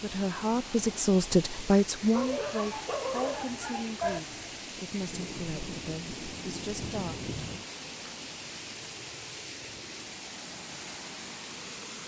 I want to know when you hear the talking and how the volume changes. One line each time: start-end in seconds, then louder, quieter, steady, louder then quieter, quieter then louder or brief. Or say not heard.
0.0-7.3 quieter.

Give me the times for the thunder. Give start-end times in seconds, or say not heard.
5.0-7.7.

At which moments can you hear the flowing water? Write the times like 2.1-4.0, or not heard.
0.0-12.0.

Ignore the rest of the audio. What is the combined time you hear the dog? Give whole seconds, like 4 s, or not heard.
2 s.